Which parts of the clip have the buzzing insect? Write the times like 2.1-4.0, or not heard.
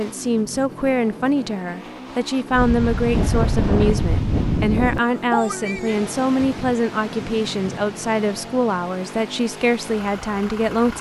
not heard.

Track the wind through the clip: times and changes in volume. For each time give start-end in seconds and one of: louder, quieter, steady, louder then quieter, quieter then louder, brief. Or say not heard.
2.5-10.9 quieter.